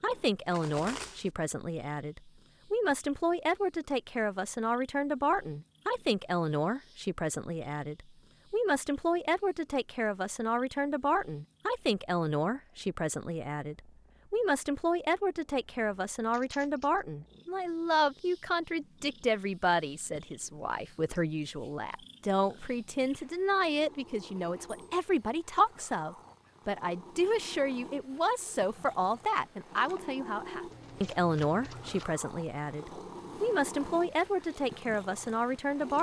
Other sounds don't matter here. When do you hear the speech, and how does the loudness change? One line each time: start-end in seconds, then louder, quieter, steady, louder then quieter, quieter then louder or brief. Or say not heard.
0.0-35.9 steady.